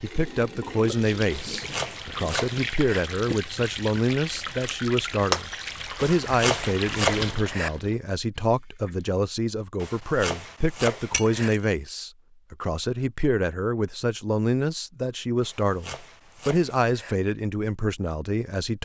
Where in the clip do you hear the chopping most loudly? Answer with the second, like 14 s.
7 s.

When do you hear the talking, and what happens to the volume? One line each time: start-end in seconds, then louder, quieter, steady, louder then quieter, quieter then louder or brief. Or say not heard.
0.0-18.7 steady.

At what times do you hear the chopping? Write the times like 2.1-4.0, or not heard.
1.3-3.0, 6.0-7.7, 9.8-11.5, 15.4-17.1.